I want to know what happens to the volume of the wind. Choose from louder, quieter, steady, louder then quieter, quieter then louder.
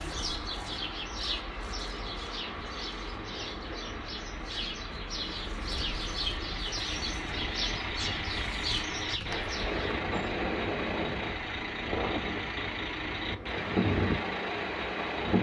louder.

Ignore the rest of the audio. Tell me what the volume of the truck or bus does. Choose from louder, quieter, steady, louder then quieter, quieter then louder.
louder.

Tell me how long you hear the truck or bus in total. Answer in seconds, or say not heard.
15 s.